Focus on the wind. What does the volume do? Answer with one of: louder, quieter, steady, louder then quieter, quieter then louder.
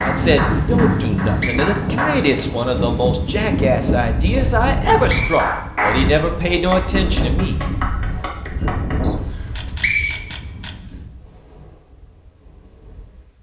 quieter.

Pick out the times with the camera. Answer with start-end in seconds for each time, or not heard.
8.9-10.8.